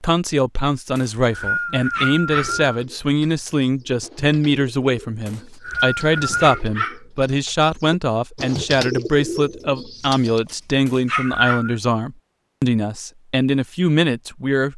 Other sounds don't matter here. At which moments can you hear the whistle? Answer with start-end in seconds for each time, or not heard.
0.9-2.7, 5.2-6.6, 10.8-11.8.